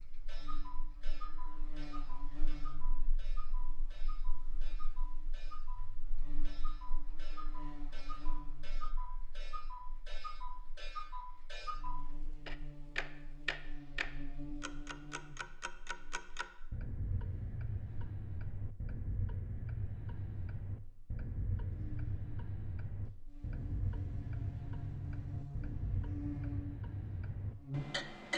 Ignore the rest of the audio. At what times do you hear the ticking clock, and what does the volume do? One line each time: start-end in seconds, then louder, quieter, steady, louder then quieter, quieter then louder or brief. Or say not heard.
0.0-28.3 louder.